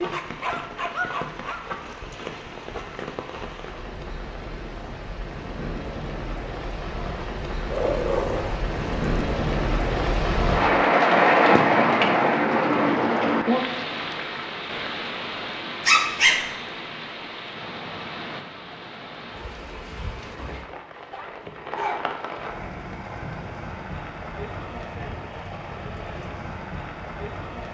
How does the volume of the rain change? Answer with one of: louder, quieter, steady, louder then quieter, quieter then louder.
louder then quieter.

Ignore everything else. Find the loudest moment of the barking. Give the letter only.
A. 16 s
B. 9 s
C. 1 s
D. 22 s
A.